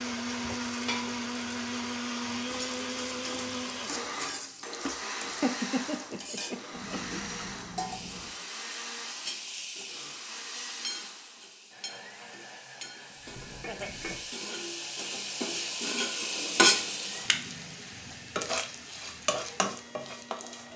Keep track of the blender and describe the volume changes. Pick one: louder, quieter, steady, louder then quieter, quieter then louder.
quieter.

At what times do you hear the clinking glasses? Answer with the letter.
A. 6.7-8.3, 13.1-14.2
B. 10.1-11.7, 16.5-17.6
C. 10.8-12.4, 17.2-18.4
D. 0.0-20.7
A.